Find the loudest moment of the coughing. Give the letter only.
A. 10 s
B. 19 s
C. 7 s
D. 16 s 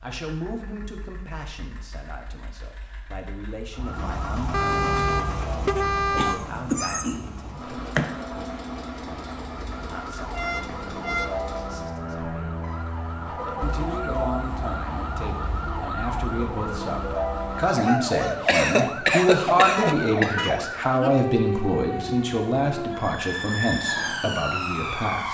B.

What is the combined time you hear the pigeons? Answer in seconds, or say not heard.
not heard.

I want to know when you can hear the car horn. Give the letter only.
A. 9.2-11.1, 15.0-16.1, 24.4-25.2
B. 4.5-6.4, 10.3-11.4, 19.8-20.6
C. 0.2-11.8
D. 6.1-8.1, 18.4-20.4
B.